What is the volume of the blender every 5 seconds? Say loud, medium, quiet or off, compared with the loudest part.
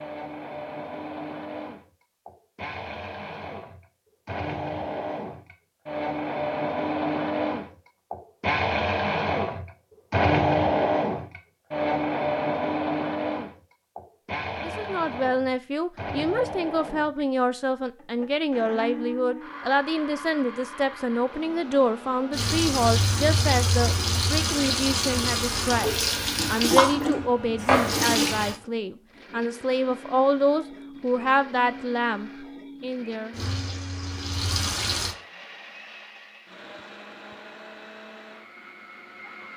medium, loud, loud, medium, quiet, quiet, quiet, quiet.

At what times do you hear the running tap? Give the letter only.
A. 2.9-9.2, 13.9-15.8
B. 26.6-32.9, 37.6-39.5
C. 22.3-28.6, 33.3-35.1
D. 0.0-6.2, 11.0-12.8
C.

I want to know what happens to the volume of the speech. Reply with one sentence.
The volume of the speech stays about the same.